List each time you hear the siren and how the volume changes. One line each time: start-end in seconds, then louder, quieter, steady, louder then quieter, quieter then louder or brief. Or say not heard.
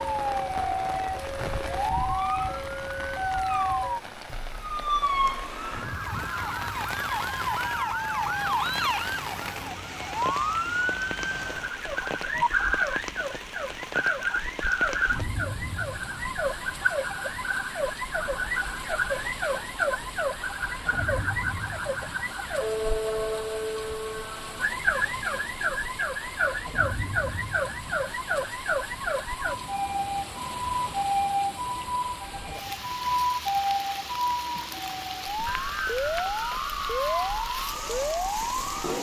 0.0-38.9 steady.